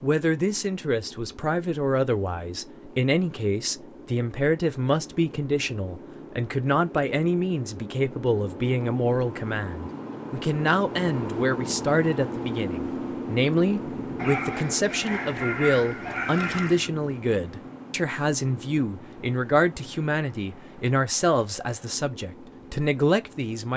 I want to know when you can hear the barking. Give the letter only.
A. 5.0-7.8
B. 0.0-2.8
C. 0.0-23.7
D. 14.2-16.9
D.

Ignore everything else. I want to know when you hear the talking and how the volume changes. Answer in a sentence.
The talking can be heard from 0.0 to 23.7 s, at a steady volume.